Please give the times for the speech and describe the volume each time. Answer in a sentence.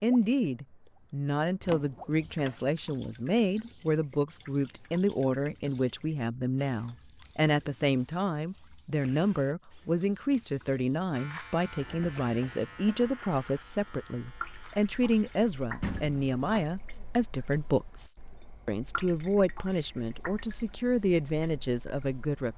You can hear the speech from 0.0 to 22.5 s, at a steady volume.